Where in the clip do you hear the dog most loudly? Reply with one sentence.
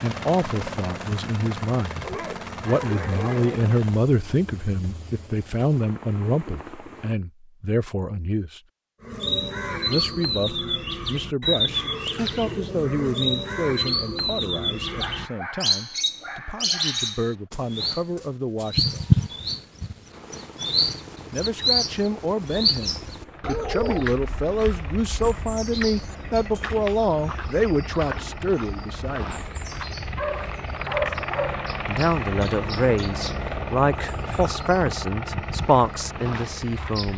The volume of the dog peaks at 31 seconds.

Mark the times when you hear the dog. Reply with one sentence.
The dog can be heard from 2.0 to 3.8 s, from 14.8 to 17.4 s and from 30.1 to 31.7 s.